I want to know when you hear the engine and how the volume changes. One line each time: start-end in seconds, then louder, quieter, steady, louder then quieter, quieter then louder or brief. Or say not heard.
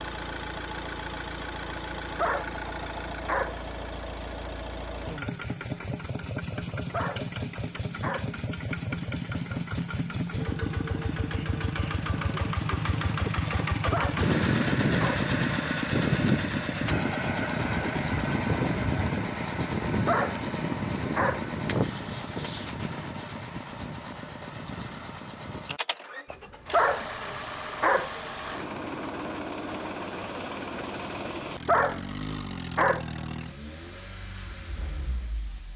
0.0-35.7 louder then quieter.